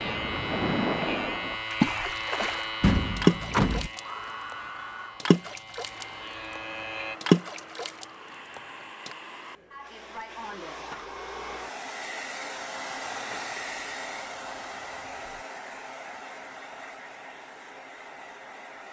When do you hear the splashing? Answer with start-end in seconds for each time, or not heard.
0.0-4.5, 5.2-6.6, 7.2-9.2.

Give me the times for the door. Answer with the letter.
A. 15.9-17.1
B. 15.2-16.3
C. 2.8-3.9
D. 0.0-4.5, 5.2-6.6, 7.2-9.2
C.